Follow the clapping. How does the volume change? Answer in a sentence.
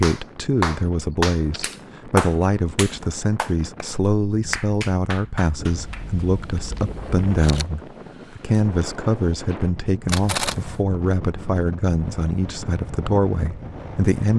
The volume of the clapping goes down.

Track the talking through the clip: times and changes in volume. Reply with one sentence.
The talking can be heard from 0.0 to 14.3 s, at a steady volume.